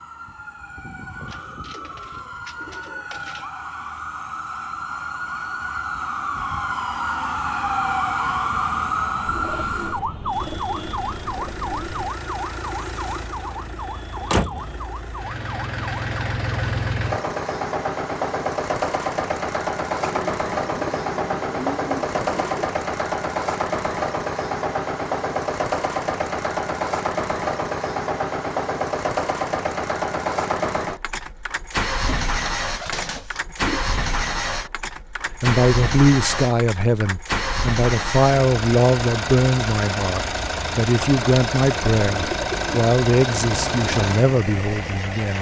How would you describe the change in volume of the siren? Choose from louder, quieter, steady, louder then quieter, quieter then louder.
louder then quieter.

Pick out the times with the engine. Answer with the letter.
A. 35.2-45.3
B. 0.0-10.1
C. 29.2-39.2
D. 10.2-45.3
D.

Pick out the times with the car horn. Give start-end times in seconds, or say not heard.
not heard.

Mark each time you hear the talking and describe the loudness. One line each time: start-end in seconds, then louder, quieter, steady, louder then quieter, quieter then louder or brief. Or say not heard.
35.2-45.3 steady.